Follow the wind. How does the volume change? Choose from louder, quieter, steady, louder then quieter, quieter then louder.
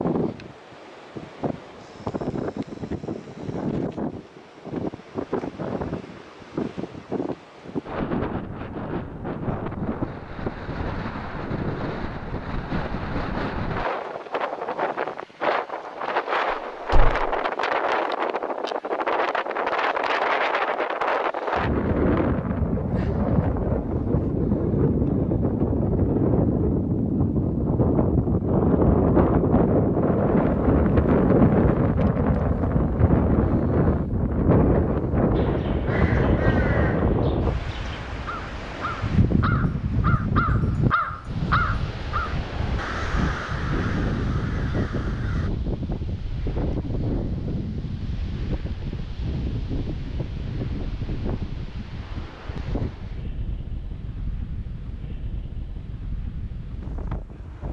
louder then quieter.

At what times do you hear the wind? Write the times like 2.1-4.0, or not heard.
0.0-57.6.